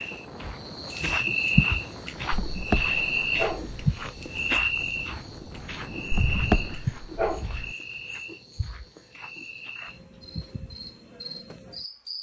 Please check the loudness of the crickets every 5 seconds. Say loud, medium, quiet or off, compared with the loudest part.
loud, medium, quiet.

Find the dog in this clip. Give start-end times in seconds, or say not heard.
2.3-4.0, 6.1-7.8.